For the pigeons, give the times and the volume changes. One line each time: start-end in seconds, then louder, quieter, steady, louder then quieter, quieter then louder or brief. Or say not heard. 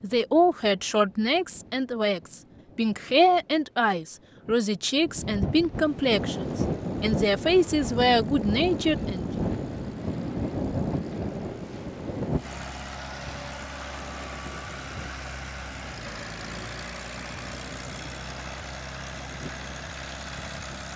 not heard.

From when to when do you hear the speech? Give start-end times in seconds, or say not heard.
0.0-9.4.